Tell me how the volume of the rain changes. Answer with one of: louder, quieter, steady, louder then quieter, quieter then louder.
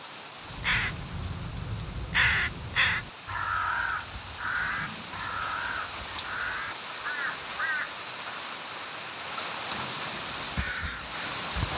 louder.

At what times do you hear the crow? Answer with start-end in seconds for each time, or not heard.
0.5-8.0, 10.3-11.7.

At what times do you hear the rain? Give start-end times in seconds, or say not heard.
0.0-11.7.